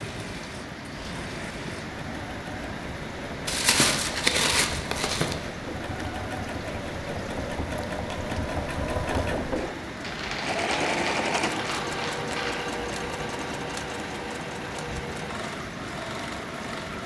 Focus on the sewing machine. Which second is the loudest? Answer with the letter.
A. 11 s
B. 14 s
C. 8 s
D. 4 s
A.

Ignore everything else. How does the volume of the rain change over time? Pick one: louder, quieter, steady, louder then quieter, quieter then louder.
steady.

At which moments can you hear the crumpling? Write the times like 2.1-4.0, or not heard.
3.5-5.3, 10.0-12.7.